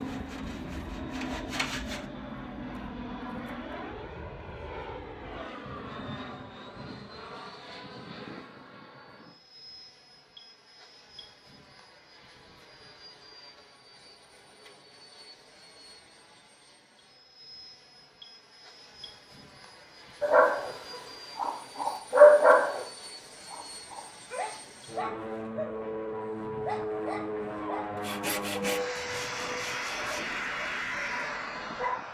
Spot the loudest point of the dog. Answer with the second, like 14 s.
22 s.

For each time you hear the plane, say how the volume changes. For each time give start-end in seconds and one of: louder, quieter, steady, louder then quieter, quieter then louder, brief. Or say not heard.
0.0-32.0 quieter then louder.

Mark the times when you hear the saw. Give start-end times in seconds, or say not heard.
0.0-2.1, 27.9-30.2.